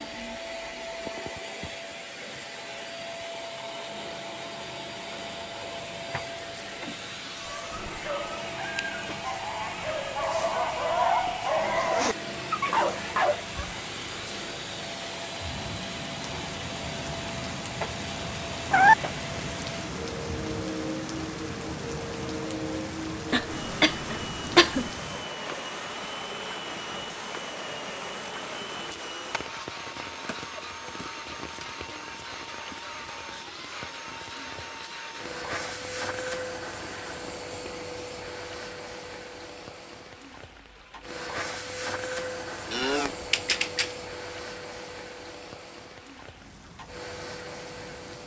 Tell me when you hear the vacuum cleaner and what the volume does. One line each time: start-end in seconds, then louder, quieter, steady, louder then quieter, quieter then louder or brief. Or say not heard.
0.0-48.2 steady.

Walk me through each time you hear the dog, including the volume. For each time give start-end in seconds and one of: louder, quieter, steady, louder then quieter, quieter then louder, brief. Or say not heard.
7.4-13.8 louder.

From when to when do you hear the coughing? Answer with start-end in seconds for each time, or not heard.
23.3-24.9.